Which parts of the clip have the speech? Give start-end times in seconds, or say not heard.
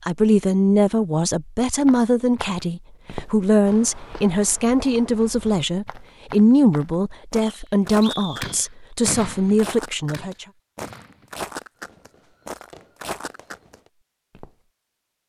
0.1-10.4.